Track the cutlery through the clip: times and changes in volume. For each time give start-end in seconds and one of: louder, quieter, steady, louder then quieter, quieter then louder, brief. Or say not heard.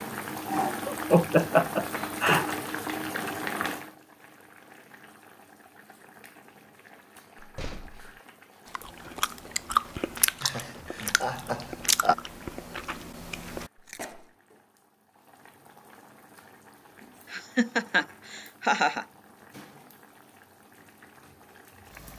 not heard.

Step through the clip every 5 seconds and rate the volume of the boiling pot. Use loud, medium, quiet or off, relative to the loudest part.
loud, quiet, quiet, quiet, quiet.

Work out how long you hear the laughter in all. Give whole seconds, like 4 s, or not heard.
5 s.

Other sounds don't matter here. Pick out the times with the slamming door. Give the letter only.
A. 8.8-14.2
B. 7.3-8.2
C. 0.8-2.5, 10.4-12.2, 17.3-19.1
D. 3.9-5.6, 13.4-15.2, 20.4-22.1
B.